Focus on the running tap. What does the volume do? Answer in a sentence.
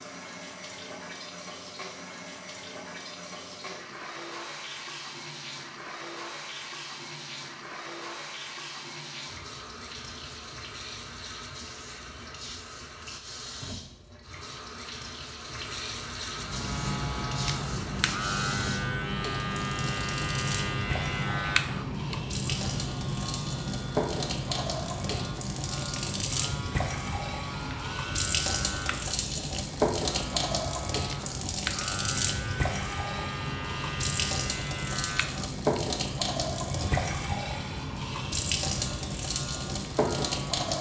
The volume of the running tap goes up.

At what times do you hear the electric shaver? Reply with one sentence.
The electric shaver can be heard from 16.2 to 40.7 s.